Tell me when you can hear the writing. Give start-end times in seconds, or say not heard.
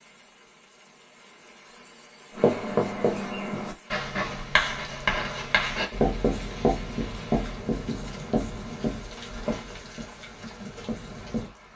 2.4-11.5.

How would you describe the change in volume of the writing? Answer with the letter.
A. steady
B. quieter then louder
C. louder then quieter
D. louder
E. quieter
E.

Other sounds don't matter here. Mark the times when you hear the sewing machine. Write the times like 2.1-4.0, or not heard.
not heard.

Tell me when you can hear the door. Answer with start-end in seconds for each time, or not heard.
not heard.